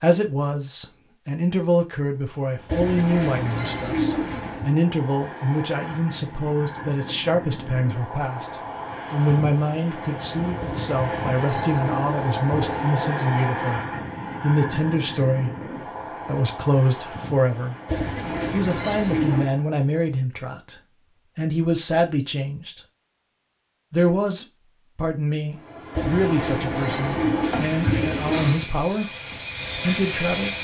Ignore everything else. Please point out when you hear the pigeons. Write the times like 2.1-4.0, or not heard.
2.6-4.7, 10.6-12.9, 17.9-19.6, 25.9-28.6.